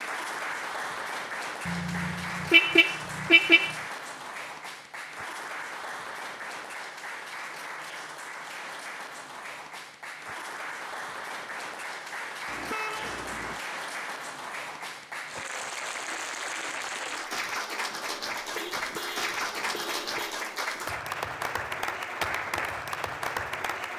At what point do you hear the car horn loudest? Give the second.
3 s.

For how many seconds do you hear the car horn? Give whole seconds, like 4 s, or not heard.
5 s.